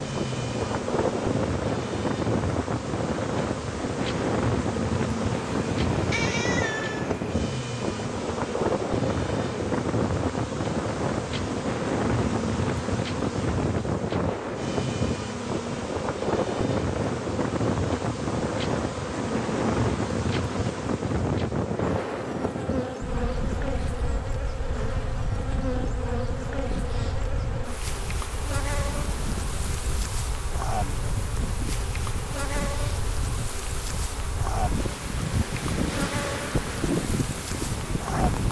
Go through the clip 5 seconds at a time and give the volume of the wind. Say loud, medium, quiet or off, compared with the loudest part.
loud, loud, loud, loud, loud, medium, medium, loud.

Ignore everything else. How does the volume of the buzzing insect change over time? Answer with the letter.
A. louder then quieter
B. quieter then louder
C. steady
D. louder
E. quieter
C.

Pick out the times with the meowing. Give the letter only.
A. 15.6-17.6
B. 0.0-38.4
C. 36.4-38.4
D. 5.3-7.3
D.